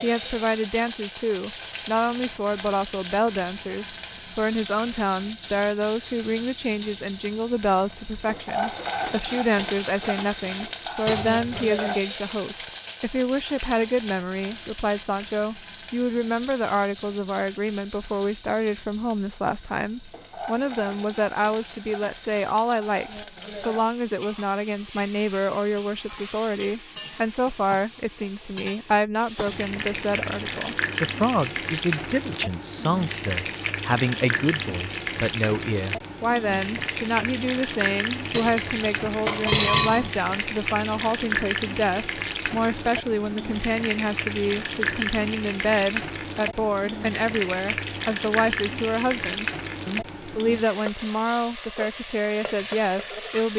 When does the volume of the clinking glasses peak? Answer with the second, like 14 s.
40 s.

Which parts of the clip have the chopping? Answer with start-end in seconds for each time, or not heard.
not heard.